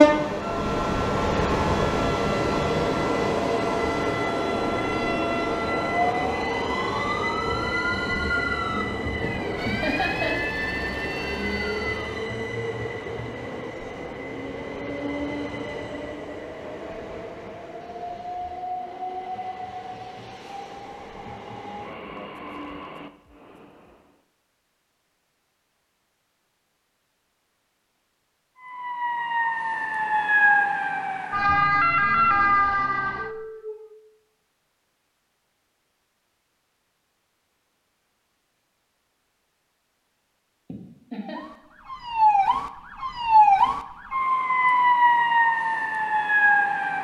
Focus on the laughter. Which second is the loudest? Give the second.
10 s.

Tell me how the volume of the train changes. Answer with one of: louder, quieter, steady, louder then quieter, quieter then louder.
quieter.